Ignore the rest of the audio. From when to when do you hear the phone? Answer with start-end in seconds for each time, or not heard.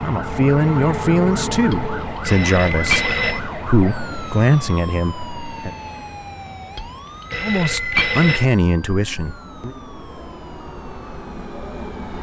1.7-3.4, 6.8-8.4.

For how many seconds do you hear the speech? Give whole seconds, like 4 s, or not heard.
8 s.